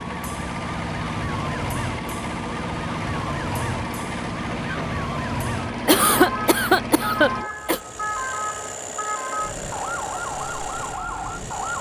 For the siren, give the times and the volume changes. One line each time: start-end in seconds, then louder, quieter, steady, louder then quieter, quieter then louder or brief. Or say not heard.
0.0-11.7 steady.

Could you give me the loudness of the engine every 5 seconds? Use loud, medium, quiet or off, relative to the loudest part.
loud, loud, medium.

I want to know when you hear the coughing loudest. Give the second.
6 s.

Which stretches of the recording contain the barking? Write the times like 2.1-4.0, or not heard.
not heard.